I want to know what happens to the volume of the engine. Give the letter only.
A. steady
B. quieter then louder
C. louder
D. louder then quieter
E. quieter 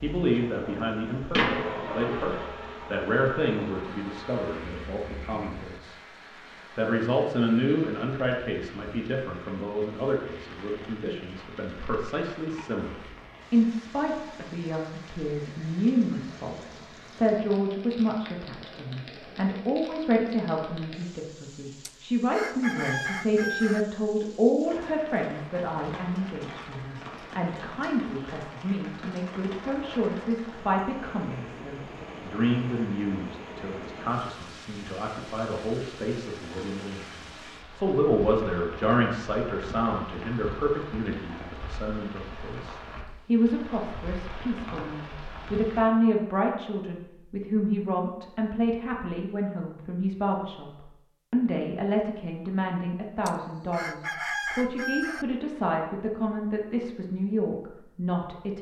E.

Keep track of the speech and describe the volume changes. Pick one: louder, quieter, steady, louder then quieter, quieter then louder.
steady.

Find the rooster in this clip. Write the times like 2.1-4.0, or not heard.
21.9-23.9, 53.2-55.2.